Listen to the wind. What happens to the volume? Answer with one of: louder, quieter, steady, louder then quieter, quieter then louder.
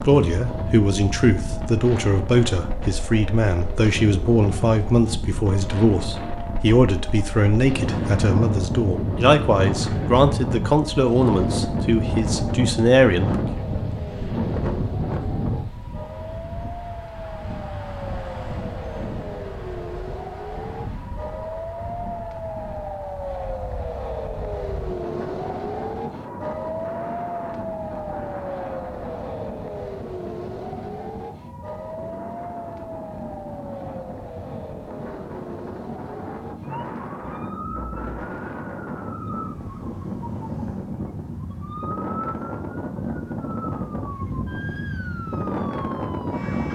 quieter then louder.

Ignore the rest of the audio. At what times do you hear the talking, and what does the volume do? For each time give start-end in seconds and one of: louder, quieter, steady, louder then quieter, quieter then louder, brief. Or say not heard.
0.0-13.6 steady.